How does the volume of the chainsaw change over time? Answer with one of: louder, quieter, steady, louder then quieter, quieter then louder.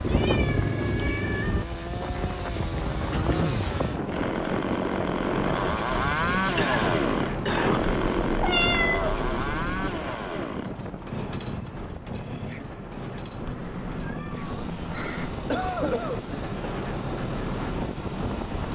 louder then quieter.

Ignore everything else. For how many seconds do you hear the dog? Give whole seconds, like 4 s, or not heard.
not heard.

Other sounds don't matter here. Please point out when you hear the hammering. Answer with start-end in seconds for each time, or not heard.
not heard.